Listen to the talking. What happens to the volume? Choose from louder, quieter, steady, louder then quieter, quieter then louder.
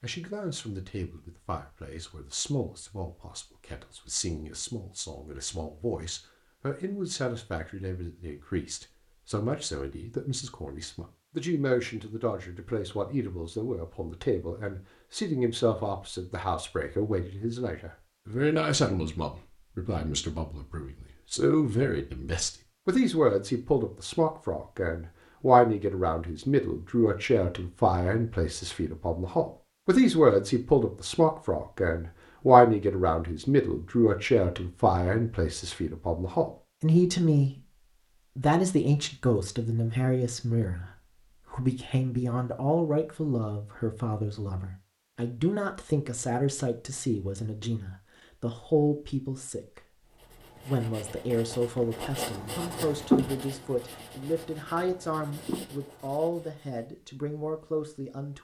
louder then quieter.